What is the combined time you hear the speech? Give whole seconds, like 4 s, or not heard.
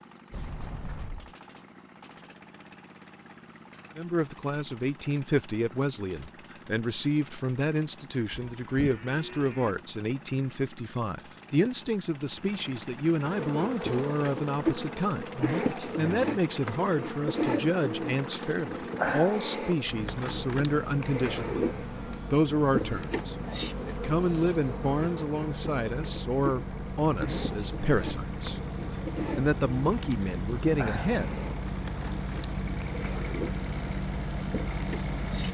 27 s.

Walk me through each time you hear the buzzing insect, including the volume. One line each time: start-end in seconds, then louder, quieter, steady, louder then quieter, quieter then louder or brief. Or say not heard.
13.2-35.4 quieter.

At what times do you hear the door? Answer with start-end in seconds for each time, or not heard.
0.3-1.4.